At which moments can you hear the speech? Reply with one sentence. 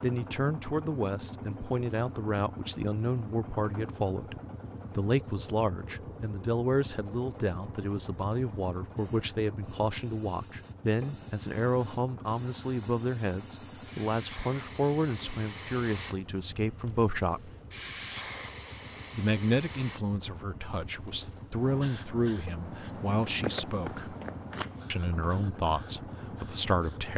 You can hear the speech from 0.0 to 4.3 s, from 5.0 to 17.5 s, from 19.1 to 24.1 s and from 24.9 to 27.1 s.